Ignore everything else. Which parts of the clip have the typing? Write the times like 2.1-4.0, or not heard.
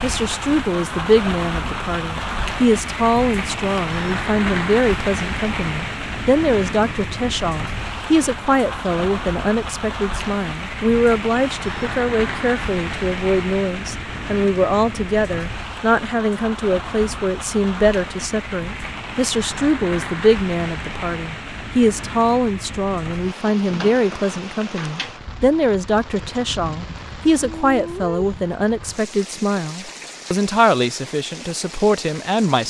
not heard.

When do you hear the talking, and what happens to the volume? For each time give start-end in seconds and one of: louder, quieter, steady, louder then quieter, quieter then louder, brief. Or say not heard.
0.0-32.6 steady.